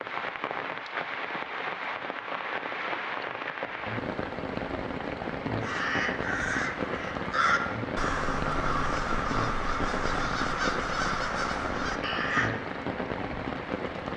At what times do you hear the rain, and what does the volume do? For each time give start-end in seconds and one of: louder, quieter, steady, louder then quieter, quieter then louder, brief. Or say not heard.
0.0-14.1 steady.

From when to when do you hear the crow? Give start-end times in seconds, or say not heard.
5.6-12.5.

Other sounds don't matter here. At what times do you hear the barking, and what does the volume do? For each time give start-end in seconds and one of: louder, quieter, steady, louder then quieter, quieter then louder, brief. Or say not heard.
not heard.